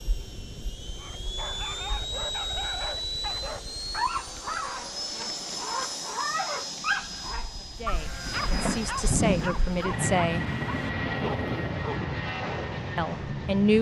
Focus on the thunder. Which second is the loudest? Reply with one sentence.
The volume of the thunder peaks at 9 seconds.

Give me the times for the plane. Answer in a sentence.
The plane can be heard from 0.0 to 13.7 s.